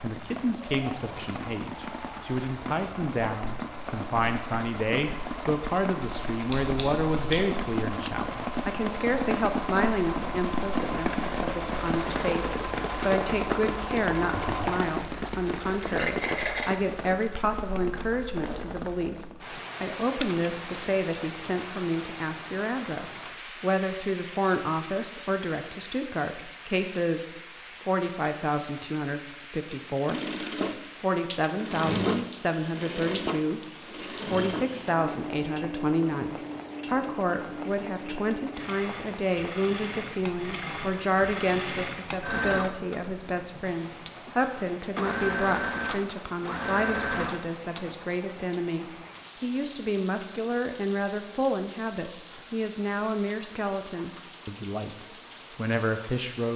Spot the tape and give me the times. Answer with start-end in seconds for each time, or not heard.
not heard.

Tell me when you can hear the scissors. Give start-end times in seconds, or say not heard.
6.5-7.5.